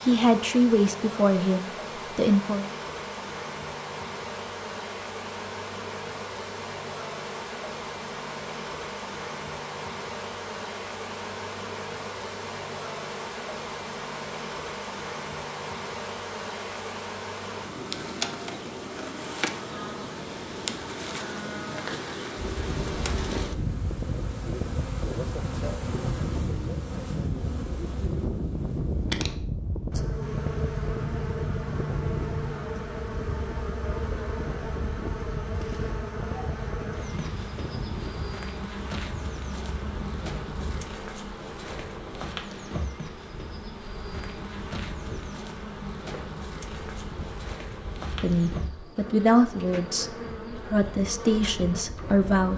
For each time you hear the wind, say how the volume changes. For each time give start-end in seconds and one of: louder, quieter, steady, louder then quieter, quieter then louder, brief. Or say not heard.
22.4-52.5 quieter.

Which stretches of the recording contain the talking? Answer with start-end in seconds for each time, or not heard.
0.0-2.6, 48.2-52.5.